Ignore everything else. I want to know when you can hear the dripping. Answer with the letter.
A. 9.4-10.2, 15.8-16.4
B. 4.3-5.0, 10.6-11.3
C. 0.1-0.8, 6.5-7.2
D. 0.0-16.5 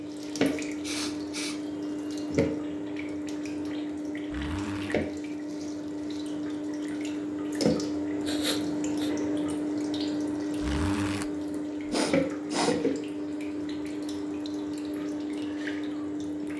D.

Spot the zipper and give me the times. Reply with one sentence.
You can hear the zipper from 4.3 to 5.0 s and from 10.6 to 11.3 s.